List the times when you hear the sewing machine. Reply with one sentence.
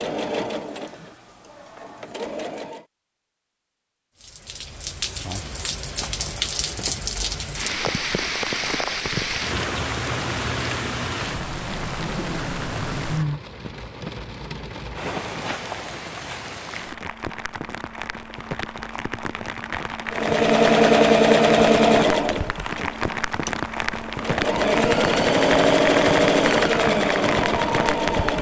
The sewing machine can be heard from 0.0 to 2.8 s and from 20.1 to 28.3 s.